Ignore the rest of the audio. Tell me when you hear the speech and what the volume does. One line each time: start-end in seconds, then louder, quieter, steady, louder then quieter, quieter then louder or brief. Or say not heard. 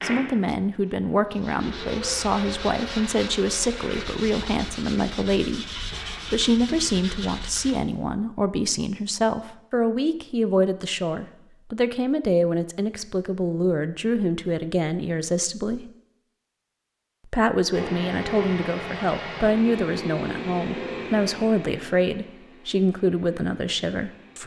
0.0-5.7 steady
6.3-15.8 steady
17.2-24.4 steady.